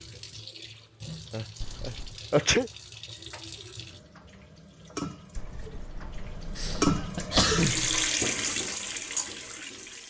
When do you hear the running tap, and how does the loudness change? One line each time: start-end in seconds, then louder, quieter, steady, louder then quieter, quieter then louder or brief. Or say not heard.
0.0-10.0 louder.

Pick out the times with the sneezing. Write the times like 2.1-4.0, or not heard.
1.3-2.7, 6.5-8.1.